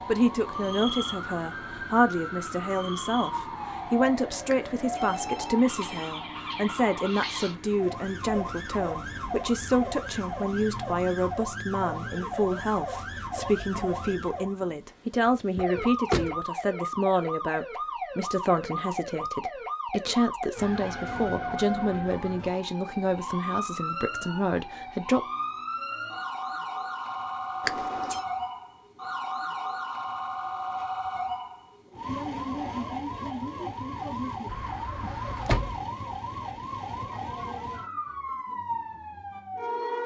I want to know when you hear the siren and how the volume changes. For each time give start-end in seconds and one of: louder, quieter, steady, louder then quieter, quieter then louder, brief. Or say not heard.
0.0-40.0 steady.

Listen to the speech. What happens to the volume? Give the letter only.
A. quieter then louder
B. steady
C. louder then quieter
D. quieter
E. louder
B.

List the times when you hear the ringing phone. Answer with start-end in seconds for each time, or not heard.
4.5-6.2, 27.6-28.2.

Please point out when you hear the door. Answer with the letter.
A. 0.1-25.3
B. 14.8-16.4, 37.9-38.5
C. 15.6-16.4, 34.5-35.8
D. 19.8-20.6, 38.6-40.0
C.